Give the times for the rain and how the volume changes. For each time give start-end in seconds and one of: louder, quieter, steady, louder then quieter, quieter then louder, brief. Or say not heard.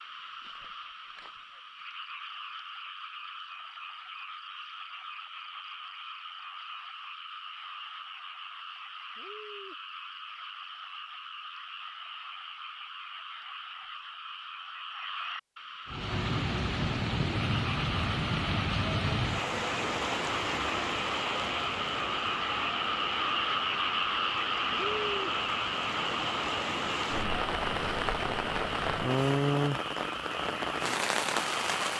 15.8-31.9 quieter then louder.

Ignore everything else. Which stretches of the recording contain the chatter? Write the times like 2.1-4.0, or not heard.
not heard.